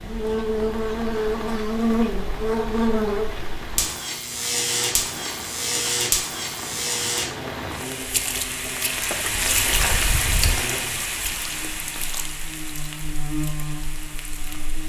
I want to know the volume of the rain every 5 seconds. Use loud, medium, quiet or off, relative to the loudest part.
medium, loud, loud.